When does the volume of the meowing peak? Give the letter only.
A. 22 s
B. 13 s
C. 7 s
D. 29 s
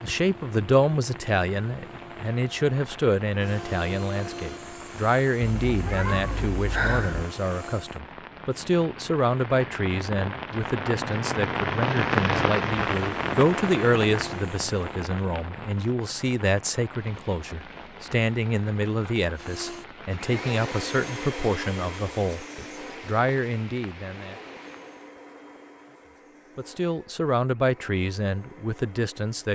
C.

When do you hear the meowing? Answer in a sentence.
You can hear the meowing from 5.6 to 7.2 s.